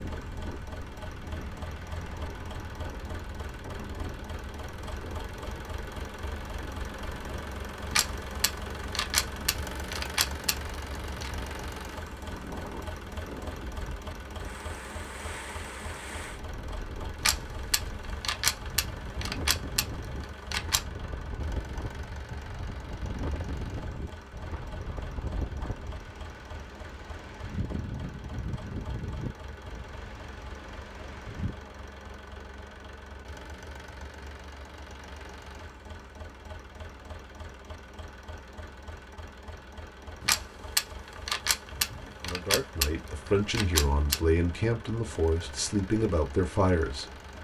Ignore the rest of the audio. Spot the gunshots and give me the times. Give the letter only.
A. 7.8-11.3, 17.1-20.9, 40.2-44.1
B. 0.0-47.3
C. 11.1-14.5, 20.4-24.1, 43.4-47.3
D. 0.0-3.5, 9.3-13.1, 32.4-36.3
A.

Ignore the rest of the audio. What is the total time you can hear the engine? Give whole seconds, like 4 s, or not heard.
47 s.